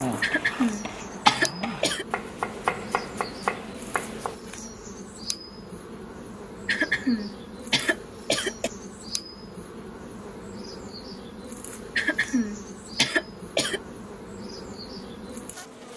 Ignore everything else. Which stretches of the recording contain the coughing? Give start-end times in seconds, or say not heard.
0.2-2.0, 6.7-8.7, 11.9-13.8.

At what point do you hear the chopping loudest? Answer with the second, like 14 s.
1 s.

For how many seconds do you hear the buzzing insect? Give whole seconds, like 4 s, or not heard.
16 s.